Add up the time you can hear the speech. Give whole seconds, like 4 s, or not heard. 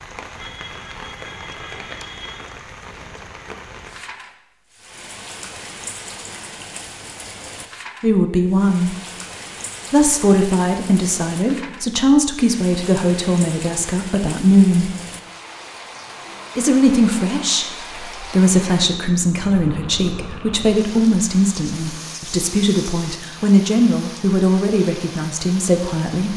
16 s.